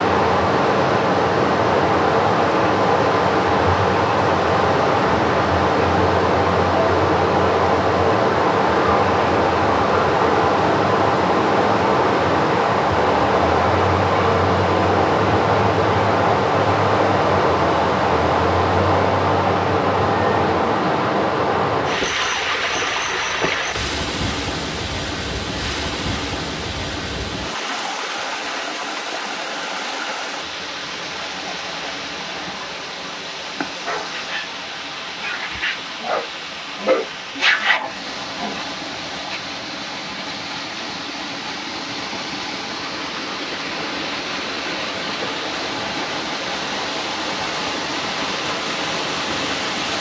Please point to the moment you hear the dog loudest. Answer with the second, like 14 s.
38 s.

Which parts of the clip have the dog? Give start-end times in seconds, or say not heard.
33.9-39.4.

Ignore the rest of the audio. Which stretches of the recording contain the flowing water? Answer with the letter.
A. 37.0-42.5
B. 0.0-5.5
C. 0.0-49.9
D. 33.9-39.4
C.